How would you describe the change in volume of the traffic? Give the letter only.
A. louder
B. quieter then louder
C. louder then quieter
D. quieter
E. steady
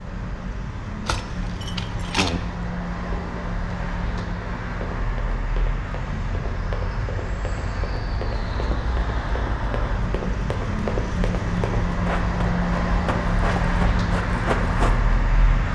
A.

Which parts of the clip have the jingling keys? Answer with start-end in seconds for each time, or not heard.
1.1-2.4.